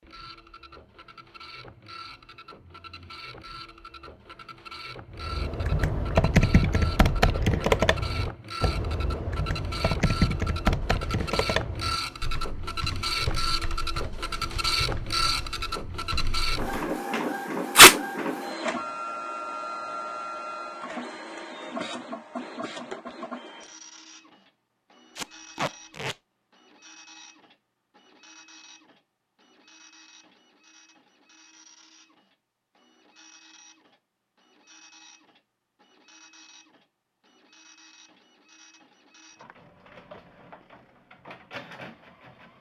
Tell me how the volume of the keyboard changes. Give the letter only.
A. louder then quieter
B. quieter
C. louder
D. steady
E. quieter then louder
B.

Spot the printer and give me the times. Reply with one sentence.
The printer can be heard from 0.0 to 42.5 s.